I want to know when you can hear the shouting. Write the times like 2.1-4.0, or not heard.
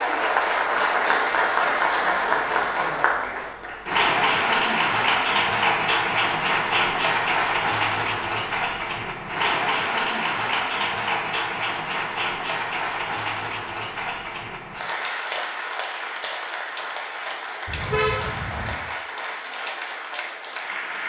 not heard.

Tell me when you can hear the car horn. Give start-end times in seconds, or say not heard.
17.6-18.8.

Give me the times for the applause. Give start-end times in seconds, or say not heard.
0.0-21.0.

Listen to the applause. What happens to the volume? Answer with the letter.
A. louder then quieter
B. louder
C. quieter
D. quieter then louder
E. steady
C.